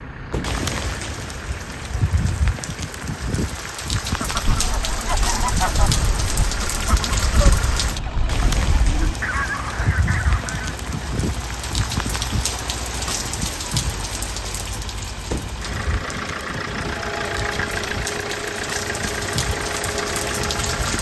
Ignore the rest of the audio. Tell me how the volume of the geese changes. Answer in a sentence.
The volume of the geese stays about the same.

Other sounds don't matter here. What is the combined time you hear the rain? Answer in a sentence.
The rain can be heard for 21 seconds in total.